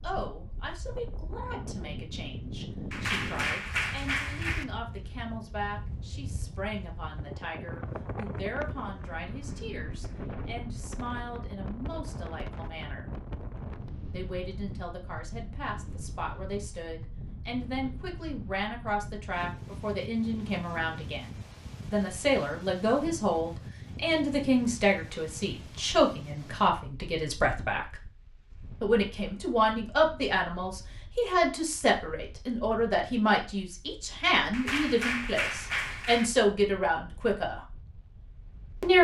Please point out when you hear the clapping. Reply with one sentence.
You can hear the clapping from 2.9 to 4.7 s and from 34.5 to 36.3 s.